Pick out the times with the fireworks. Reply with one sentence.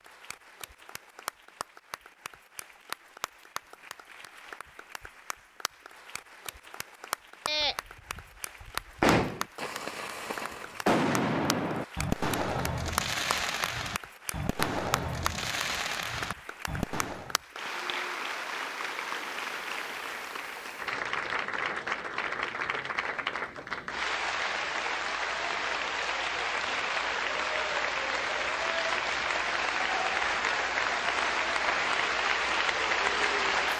You can hear the fireworks from 7.5 to 17.4 s.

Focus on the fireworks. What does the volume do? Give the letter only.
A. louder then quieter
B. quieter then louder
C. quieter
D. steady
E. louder
C.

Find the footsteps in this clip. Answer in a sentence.
The footsteps can't be heard in this clip.